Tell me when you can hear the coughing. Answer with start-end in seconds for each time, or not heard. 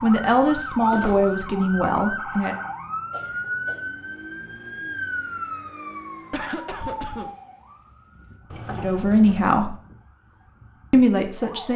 3.1-3.9, 6.3-7.3.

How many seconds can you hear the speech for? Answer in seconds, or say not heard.
4 s.